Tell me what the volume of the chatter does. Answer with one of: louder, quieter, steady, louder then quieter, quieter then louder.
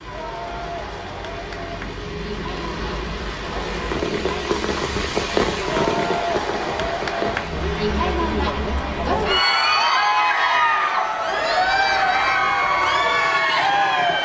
louder.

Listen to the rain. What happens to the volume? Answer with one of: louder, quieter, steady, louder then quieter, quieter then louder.
louder then quieter.